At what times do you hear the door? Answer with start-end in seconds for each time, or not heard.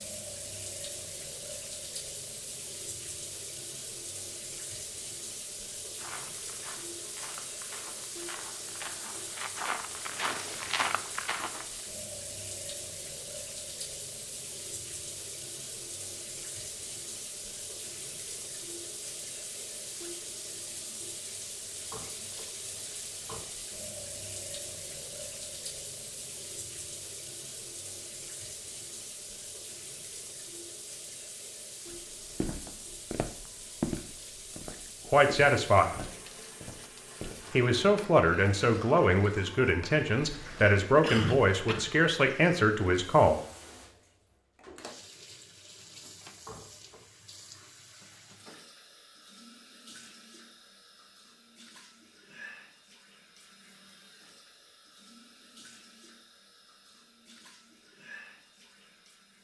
21.8-23.4, 46.4-47.0.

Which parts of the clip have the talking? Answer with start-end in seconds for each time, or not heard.
35.0-36.0, 37.5-43.4.